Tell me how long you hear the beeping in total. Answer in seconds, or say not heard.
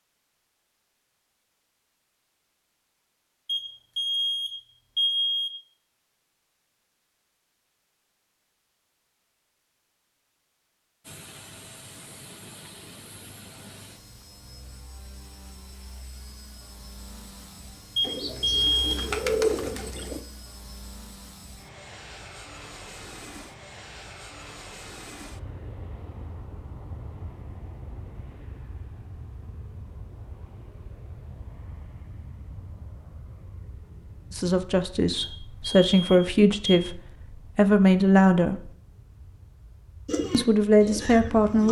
5 s.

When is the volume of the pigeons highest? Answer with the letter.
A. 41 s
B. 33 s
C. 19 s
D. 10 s
C.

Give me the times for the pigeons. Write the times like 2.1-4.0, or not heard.
18.0-20.2, 40.0-41.6.